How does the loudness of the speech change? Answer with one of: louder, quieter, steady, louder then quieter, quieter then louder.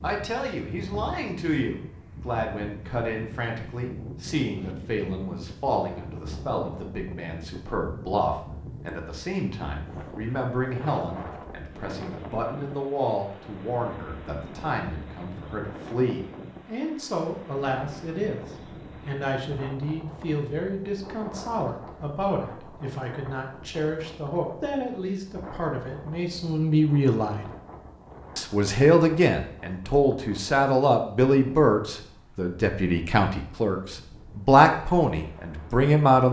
louder.